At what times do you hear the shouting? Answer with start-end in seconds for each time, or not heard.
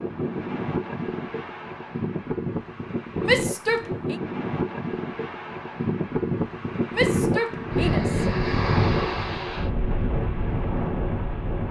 3.2-4.2, 6.9-8.2.